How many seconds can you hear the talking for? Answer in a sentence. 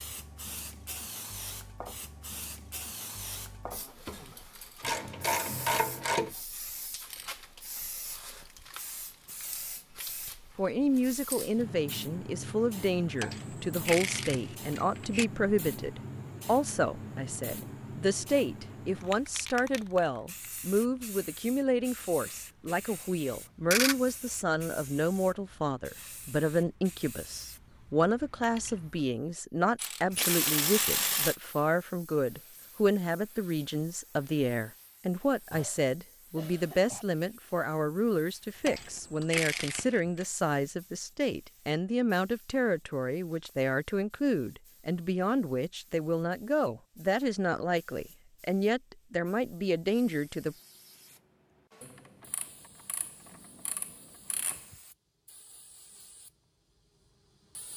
You can hear the talking for 40 seconds altogether.